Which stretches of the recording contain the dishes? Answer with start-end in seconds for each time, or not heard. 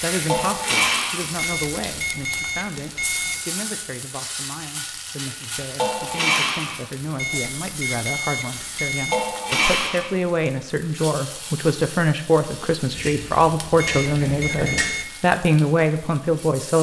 0.2-1.2, 5.8-6.8, 9.1-10.1, 12.9-14.9.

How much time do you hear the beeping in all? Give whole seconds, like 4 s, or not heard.
5 s.